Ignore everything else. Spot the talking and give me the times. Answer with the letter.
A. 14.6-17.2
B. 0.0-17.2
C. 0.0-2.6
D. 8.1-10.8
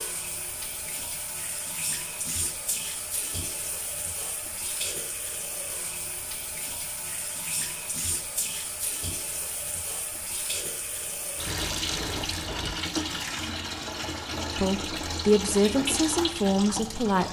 A.